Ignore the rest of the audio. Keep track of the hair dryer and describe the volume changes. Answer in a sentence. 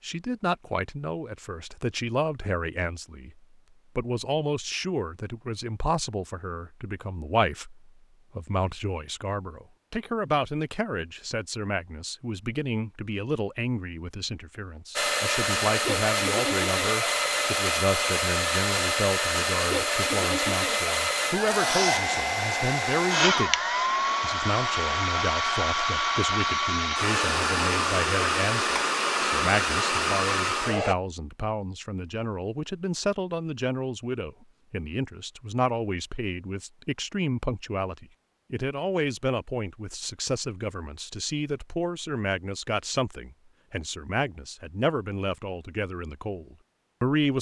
The loudness of the hair dryer stays about the same.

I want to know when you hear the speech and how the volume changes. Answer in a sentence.
The speech can be heard from 0.0 to 23.6 s, at a steady volume; and from 24.2 to 47.3 s, at a steady volume.